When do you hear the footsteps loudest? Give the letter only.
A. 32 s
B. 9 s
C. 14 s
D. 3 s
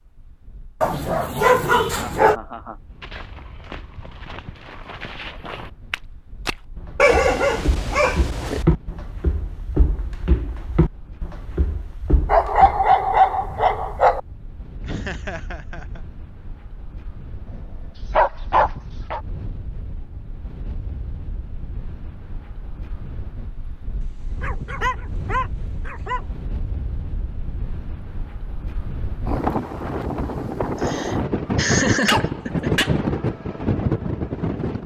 B.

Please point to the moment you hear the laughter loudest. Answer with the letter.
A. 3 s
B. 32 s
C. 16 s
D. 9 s
B.